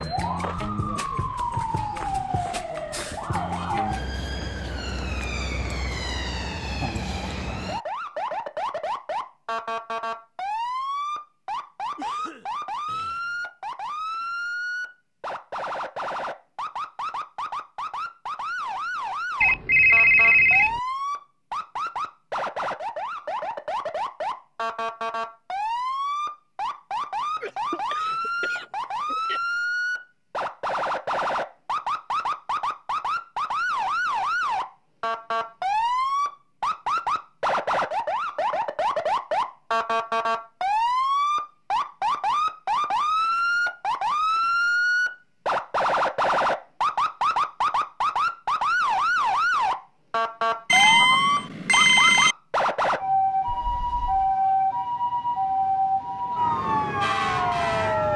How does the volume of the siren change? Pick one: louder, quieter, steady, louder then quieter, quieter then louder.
louder.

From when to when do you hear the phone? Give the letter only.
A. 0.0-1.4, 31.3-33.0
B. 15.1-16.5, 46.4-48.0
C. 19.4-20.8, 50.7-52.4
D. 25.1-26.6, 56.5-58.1
C.